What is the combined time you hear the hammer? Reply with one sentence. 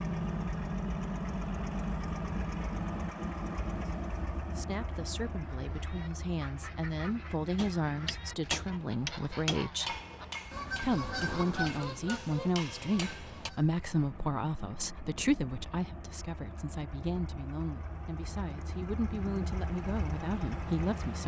You can hear the hammer for 6 seconds altogether.